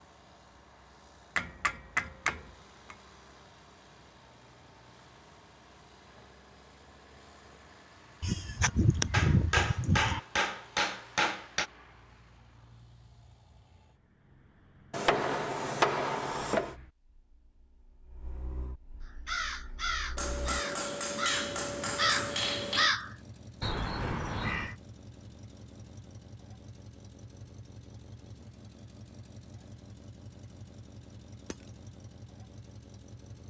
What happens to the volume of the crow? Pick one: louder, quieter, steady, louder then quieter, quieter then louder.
louder then quieter.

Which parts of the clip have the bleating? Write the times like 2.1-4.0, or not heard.
8.2-10.2.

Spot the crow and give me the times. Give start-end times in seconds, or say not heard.
19.1-24.8.